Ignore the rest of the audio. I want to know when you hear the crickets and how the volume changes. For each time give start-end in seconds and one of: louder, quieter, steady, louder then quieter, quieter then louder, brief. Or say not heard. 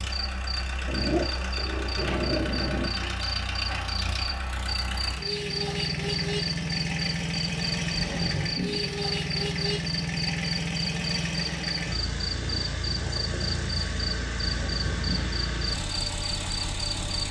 0.1-17.2 steady.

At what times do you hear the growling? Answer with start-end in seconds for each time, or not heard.
0.8-2.9, 7.9-8.9, 14.4-15.3.